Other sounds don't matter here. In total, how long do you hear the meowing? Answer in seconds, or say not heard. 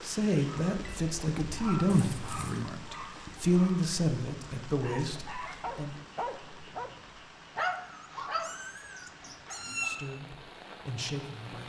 3 s.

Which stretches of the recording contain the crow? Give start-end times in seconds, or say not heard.
not heard.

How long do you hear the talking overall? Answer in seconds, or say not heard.
8 s.